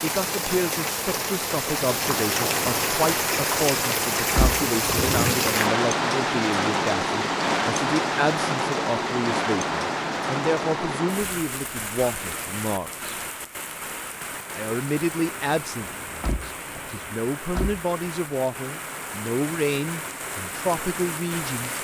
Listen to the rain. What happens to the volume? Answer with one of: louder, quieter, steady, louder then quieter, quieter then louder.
quieter.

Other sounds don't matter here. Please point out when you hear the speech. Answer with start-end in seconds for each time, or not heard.
0.0-13.2, 14.6-21.7.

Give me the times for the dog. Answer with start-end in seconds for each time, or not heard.
not heard.